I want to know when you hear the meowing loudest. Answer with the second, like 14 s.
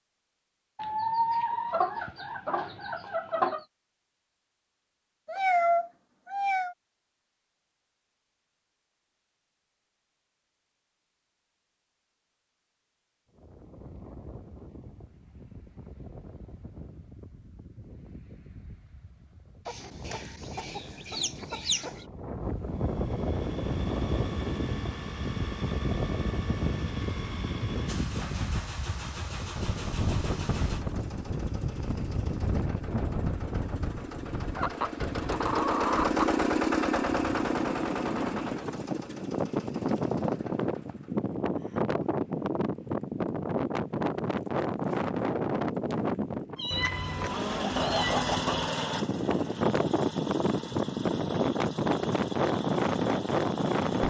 6 s.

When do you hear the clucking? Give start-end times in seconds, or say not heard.
0.8-3.6, 19.6-22.1, 34.5-36.3, 46.7-48.7.